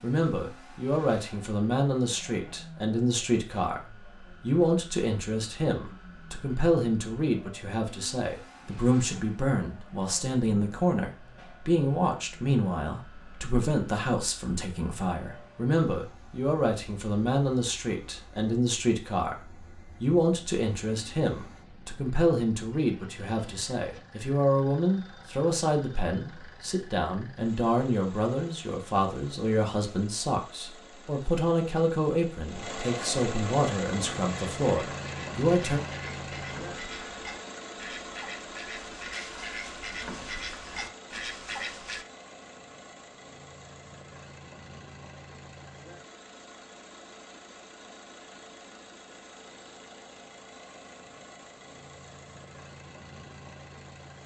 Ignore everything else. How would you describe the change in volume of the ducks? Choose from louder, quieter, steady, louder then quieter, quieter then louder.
louder.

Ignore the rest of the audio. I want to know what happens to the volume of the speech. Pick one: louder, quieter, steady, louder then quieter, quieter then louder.
steady.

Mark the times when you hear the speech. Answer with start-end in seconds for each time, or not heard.
0.0-35.8.